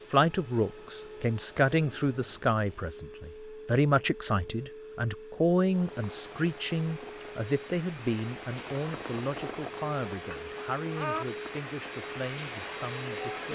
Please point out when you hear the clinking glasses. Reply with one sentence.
You can hear the clinking glasses from 10.2 to 11.2 s.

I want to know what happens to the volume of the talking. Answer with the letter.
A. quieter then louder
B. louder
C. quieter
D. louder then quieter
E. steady
C.